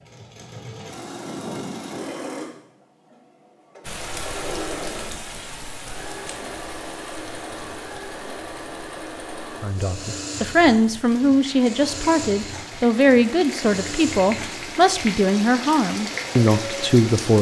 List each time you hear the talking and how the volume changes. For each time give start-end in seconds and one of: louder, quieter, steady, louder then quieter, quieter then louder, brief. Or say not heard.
9.6-17.3 steady.